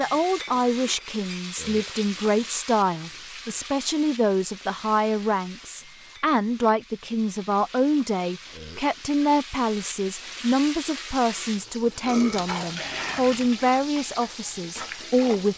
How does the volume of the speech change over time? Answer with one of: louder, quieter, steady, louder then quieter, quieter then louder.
steady.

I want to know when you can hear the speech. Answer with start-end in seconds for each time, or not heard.
0.0-15.5.